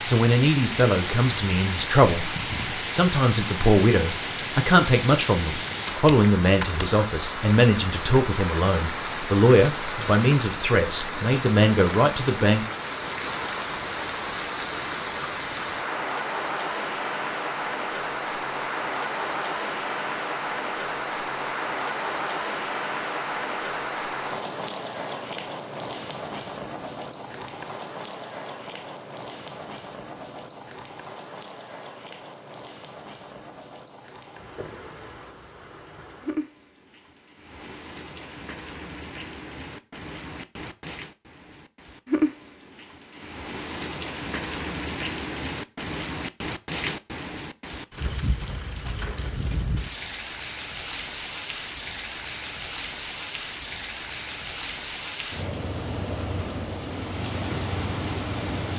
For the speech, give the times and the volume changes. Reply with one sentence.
The speech can be heard from 0.1 to 12.7 s, at a steady volume.